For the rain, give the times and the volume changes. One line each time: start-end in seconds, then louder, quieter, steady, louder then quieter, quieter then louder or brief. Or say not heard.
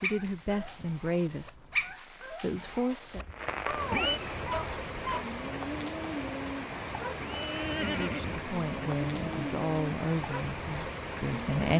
0.1-11.7 louder.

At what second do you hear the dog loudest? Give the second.
2 s.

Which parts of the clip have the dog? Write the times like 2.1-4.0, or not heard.
0.0-5.2.